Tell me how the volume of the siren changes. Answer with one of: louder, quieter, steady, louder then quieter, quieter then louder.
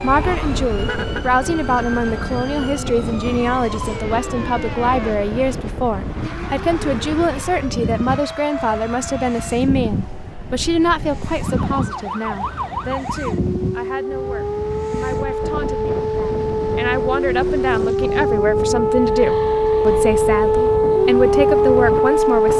louder.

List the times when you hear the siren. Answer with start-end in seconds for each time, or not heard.
0.0-22.5.